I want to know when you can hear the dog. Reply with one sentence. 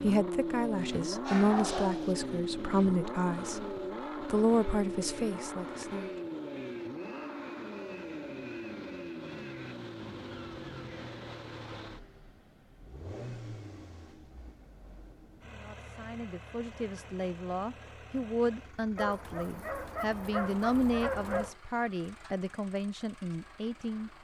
You can hear the dog from 0.9 to 2.1 s and from 18.9 to 21.6 s.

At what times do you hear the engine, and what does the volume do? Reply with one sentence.
The engine can be heard from 0.0 to 24.1 s, getting quieter.